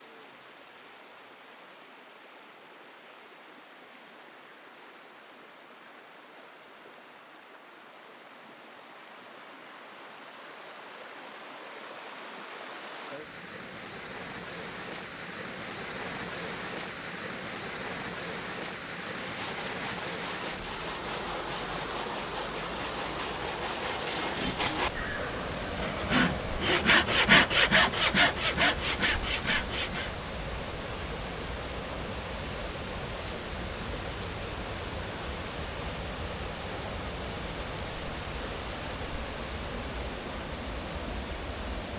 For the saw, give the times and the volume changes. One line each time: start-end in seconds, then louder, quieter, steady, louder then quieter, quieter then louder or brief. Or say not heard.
19.1-30.1 louder.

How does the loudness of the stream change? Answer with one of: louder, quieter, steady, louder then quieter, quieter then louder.
louder.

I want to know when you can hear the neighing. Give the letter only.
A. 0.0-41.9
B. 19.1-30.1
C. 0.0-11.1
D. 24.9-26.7
D.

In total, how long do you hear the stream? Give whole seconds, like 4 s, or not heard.
42 s.